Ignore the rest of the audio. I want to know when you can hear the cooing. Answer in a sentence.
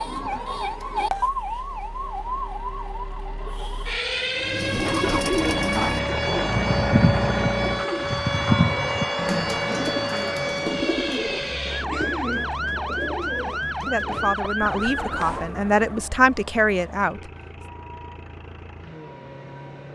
You can hear the cooing from 4.3 to 16.1 s.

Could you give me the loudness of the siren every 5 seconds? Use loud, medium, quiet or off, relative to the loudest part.
loud, loud, loud, medium.